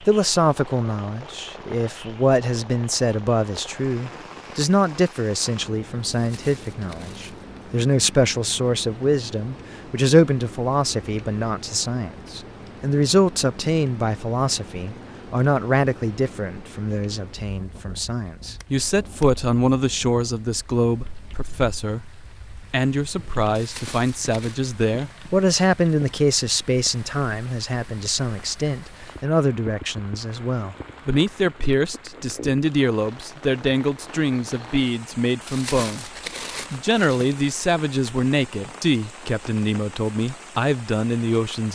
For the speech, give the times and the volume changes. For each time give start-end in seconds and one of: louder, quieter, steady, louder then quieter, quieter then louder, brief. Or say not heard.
0.1-36.0 steady
36.7-41.7 steady.